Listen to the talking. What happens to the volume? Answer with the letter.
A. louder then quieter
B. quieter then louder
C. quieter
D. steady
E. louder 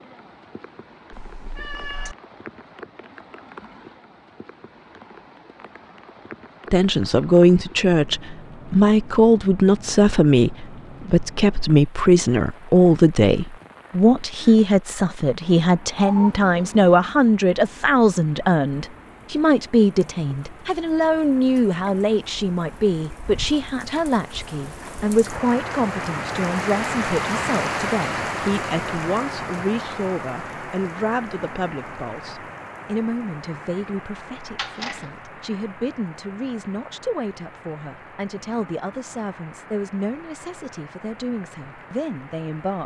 C.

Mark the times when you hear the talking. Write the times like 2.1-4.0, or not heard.
6.7-42.8.